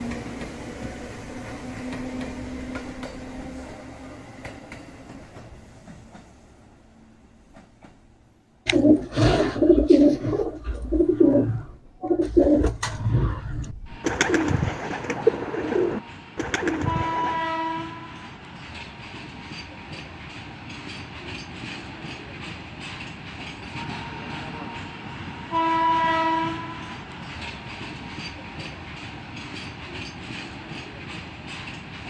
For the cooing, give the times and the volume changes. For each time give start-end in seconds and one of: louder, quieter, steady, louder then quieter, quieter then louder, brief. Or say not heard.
8.7-17.4 quieter.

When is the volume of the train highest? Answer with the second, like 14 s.
26 s.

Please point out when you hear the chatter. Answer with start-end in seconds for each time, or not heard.
not heard.